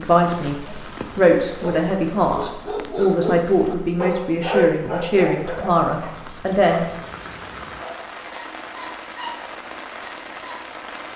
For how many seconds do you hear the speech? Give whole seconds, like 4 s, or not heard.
7 s.